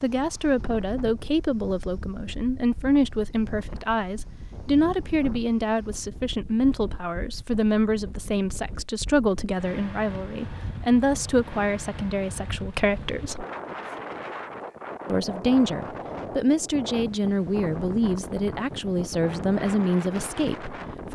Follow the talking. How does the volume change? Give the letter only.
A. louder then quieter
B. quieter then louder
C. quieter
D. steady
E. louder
D.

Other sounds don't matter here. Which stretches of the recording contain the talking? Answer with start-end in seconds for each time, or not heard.
0.0-13.4, 15.1-21.1.